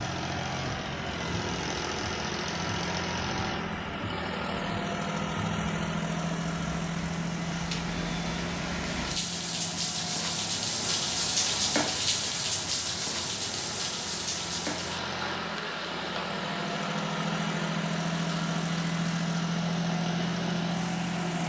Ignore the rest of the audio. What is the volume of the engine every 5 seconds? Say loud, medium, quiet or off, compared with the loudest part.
loud, loud, medium, loud, loud.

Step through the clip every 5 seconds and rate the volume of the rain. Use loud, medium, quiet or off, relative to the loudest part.
quiet, medium, loud, medium, medium.